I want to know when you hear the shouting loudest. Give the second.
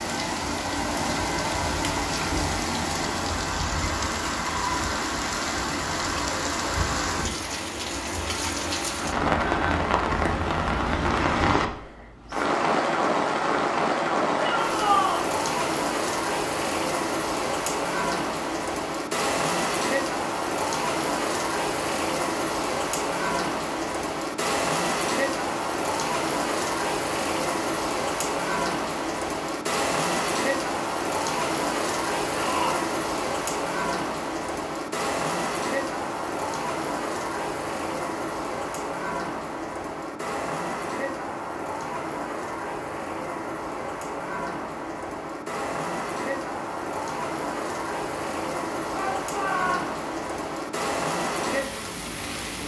15 s.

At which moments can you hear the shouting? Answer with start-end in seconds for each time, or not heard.
14.3-15.2, 32.3-32.9, 48.9-49.9.